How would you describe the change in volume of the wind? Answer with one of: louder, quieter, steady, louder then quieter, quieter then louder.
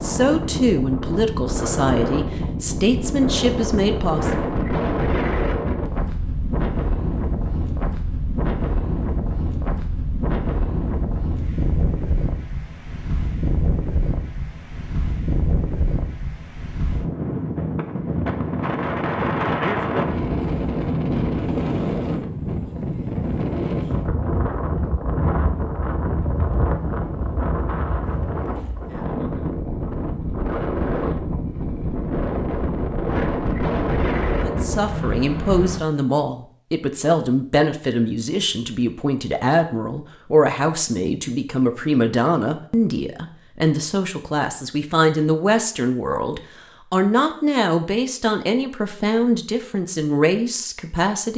steady.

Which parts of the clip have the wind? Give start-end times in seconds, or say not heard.
0.0-35.8.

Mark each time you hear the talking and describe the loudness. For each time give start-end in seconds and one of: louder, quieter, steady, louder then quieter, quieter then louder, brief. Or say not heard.
0.0-4.5 steady
34.4-51.3 steady.